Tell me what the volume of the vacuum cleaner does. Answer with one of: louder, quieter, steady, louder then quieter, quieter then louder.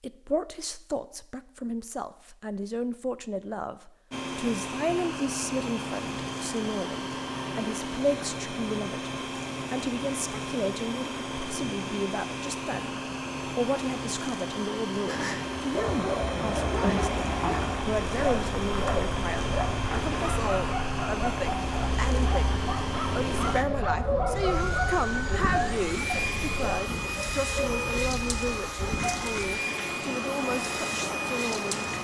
steady.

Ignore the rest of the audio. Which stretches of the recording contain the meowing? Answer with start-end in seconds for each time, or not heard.
not heard.